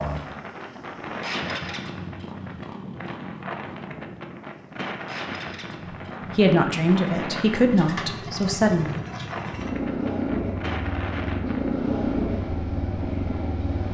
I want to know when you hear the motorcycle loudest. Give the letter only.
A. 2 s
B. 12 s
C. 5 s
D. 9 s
B.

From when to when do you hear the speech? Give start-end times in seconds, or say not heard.
6.3-9.0.